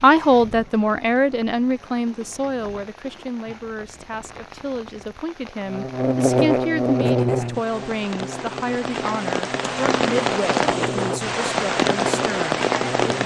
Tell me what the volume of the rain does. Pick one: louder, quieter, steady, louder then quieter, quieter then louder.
louder.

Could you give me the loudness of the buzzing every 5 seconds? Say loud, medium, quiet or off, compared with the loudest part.
off, loud, medium.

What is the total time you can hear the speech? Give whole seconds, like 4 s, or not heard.
13 s.